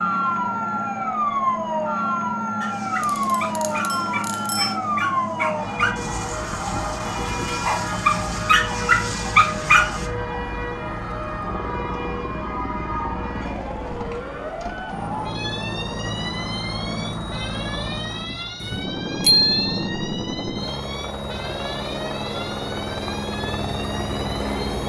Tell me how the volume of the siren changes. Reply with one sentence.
The loudness of the siren goes down.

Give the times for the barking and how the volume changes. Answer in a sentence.
You can hear the barking from 2.6 to 10.1 s, getting louder.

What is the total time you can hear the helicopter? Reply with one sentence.
The helicopter can be heard for 25 seconds in total.